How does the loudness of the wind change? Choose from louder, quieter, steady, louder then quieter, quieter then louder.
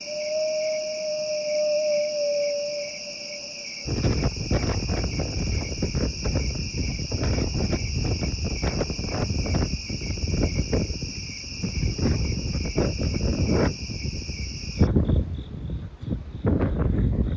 steady.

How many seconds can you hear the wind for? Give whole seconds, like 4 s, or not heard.
17 s.